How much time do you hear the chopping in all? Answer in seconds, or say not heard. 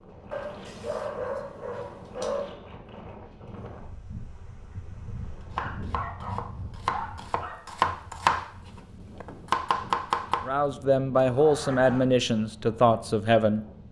5 s.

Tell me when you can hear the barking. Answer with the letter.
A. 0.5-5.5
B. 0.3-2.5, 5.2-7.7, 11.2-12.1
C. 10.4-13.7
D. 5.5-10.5
B.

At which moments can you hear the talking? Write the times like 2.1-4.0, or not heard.
10.4-13.7.